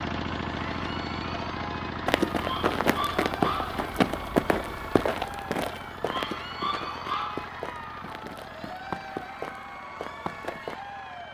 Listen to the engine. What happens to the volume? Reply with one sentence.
The loudness of the engine goes down.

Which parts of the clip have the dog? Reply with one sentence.
The dog can be heard from 2.4 to 3.8 s and from 6.0 to 7.5 s.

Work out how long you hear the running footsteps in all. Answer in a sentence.
The running footsteps can be heard for 9 seconds in total.